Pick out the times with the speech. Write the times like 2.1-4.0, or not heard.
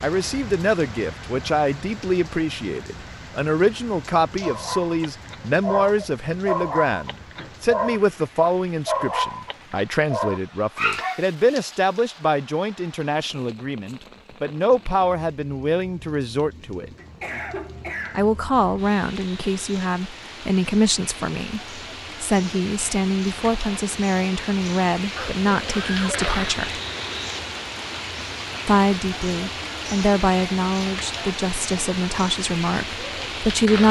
0.0-16.9, 18.1-26.8, 28.6-33.8.